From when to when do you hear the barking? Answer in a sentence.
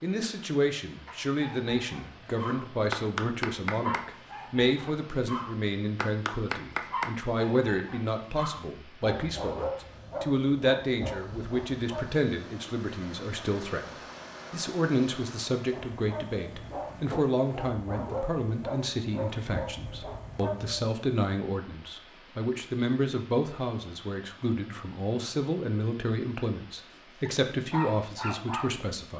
You can hear the barking from 1.1 to 12.2 s, from 15.7 to 20.9 s and from 27.2 to 28.9 s.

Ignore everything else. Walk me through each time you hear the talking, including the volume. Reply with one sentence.
You can hear the talking from 0.0 to 29.1 s, at a steady volume.